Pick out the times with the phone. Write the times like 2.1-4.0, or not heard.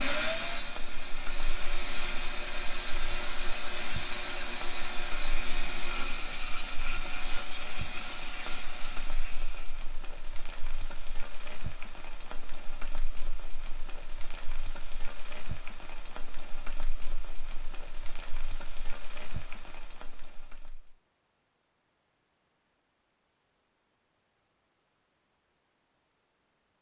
not heard.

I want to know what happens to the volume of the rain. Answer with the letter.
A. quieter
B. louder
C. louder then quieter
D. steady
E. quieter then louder
D.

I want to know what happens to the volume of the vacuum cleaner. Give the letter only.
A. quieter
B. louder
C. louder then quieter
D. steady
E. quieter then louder
D.